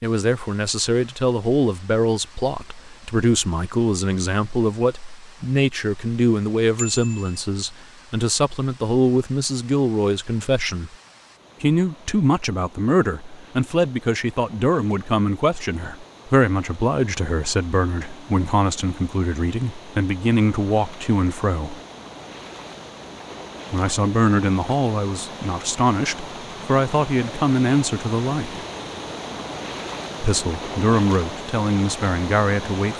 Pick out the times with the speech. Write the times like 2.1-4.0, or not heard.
0.0-10.9, 11.6-21.8, 23.7-28.6, 30.2-32.9.